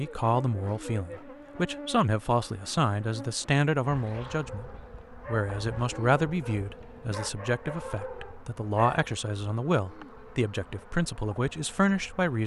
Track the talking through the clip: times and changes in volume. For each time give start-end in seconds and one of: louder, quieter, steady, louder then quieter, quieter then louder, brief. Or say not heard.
0.0-12.4 steady.